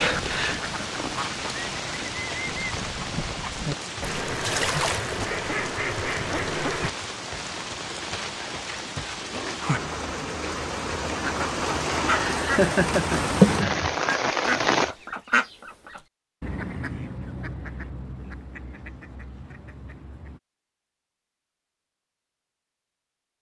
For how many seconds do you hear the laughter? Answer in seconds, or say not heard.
2 s.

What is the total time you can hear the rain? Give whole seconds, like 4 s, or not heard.
15 s.